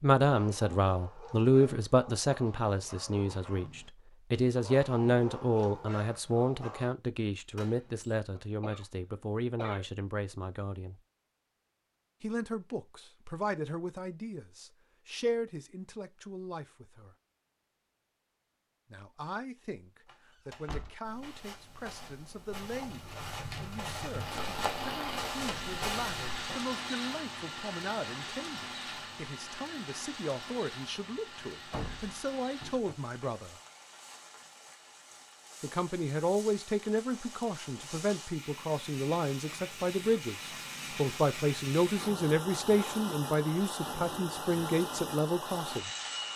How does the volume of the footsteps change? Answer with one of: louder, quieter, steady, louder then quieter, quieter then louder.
louder.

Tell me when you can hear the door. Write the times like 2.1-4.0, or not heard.
7.5-8.2, 20.1-20.9, 31.7-33.0.